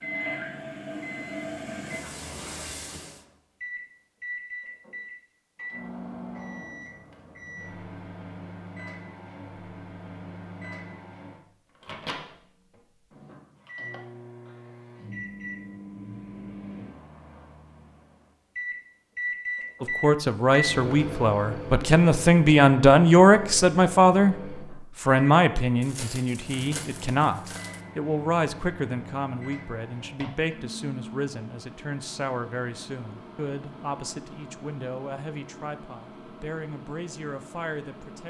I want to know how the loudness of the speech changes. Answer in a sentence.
The volume of the speech goes down.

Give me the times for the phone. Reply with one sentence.
The phone can't be heard in this clip.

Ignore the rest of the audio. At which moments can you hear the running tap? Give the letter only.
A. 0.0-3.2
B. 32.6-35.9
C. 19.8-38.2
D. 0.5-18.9
A.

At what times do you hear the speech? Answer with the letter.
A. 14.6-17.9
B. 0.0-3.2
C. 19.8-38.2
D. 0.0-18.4
C.